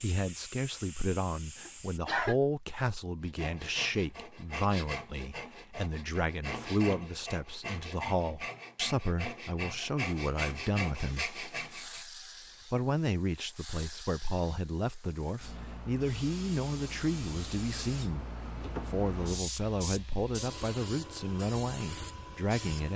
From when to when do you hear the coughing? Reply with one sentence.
You can hear the coughing from 1.6 to 2.4 s.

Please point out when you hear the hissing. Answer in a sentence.
The hissing can be heard from 0.0 to 2.0 s and from 11.0 to 22.9 s.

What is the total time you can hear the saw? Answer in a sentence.
The saw can be heard for 9 seconds in total.